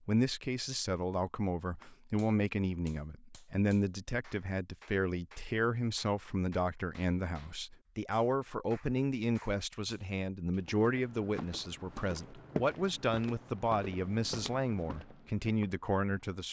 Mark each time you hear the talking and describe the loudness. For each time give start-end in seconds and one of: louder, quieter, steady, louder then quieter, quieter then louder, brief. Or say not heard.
0.1-16.4 steady.